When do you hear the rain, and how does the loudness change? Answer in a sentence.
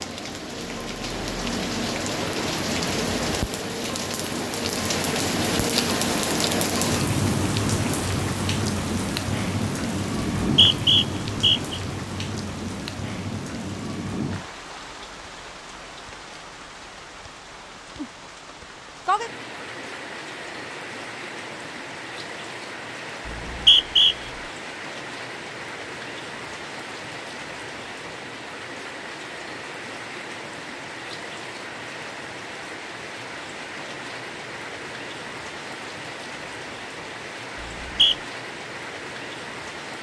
You can hear the rain from 0.0 to 39.9 s, getting quieter.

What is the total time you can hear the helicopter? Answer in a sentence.
The helicopter can't be heard in this clip.